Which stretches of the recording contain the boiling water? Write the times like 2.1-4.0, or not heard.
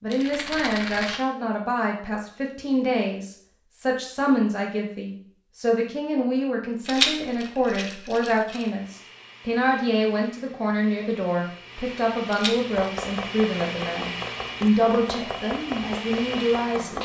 not heard.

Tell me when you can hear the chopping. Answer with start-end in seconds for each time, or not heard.
12.7-17.0.